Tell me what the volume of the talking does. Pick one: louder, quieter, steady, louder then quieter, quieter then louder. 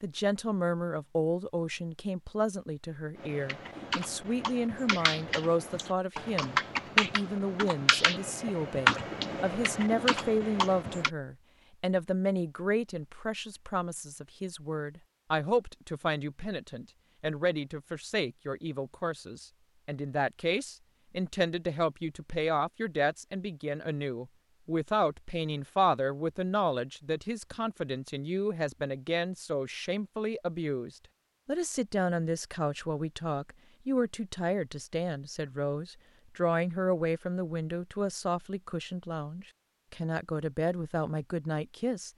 steady.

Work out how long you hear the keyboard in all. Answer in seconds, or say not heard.
8 s.